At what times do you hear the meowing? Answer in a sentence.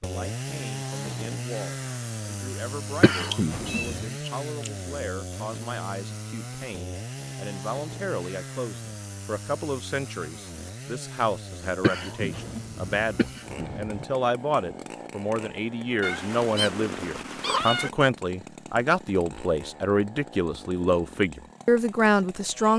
The meowing can be heard from 3.3 to 4.7 s and from 16.0 to 17.9 s.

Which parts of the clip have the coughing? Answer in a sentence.
You can hear the coughing from 3.0 to 4.0 s and from 11.8 to 14.1 s.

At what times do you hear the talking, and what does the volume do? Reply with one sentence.
The talking can be heard from 0.0 to 22.7 s, getting louder.